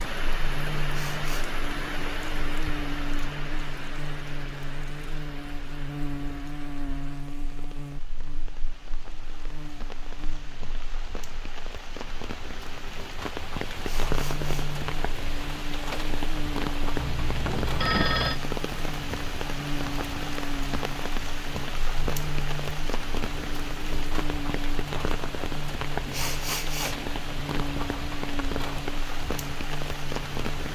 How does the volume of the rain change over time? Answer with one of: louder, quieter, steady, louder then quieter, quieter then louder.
quieter then louder.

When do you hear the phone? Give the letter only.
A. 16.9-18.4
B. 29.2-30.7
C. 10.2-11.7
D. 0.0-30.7
A.